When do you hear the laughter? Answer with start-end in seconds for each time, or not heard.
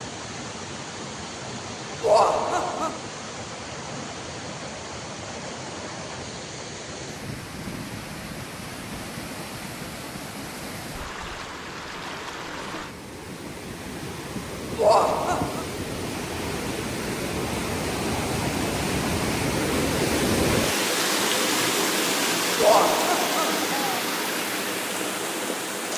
2.0-3.0, 14.8-15.7, 22.6-24.0.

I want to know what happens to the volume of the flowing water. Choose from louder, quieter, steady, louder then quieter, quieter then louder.
louder.